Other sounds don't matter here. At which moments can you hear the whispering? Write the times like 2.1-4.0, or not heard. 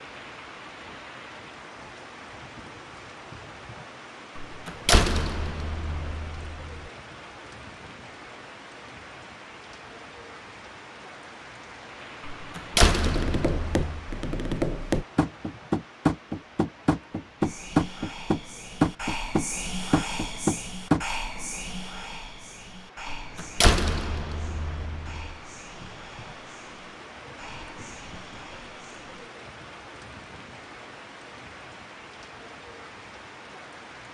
17.4-29.3.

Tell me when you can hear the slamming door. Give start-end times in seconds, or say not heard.
4.3-6.8, 12.2-14.1, 23.1-25.3.